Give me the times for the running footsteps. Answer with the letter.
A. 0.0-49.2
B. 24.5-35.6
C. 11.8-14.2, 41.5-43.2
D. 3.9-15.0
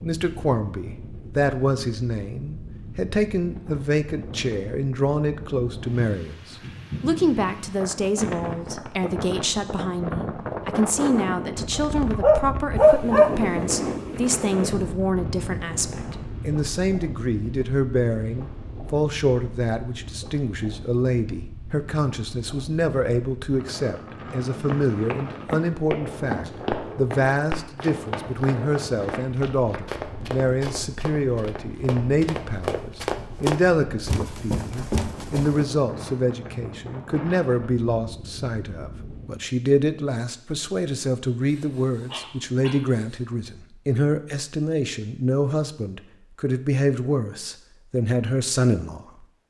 B.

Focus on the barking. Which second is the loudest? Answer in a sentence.
The loudest moment of the barking is at 13 seconds.